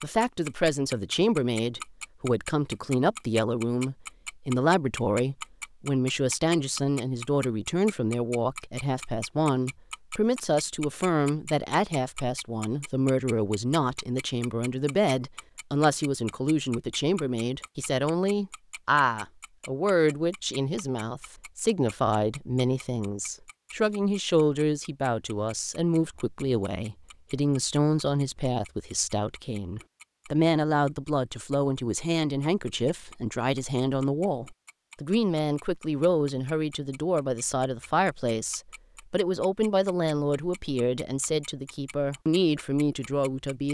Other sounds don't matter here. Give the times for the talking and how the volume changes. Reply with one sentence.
The talking can be heard from 0.0 to 43.6 s, at a steady volume.